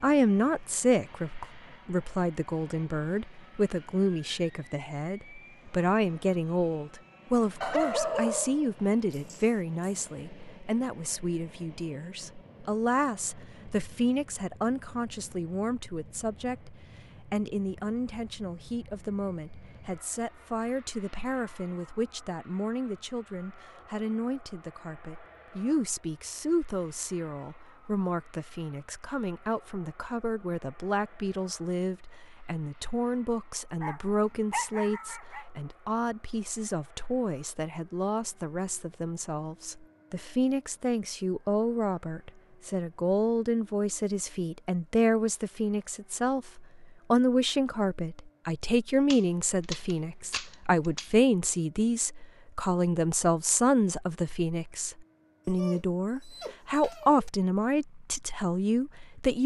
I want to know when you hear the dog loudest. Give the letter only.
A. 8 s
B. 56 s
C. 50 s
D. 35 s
A.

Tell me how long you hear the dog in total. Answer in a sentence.
You can hear the dog for 6 seconds altogether.